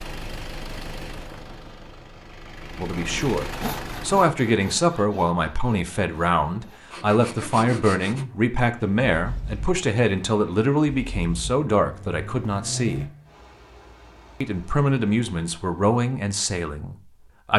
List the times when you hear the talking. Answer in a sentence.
You can hear the talking from 2.8 to 13.1 s and from 14.4 to 17.5 s.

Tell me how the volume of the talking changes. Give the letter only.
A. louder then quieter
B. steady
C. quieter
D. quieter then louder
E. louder
B.